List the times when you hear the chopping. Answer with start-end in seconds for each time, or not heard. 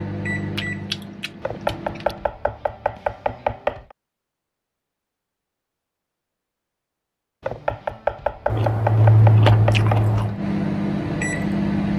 1.4-4.0, 7.4-10.2.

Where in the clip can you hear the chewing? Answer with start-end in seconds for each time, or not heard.
0.6-2.1, 8.4-10.4.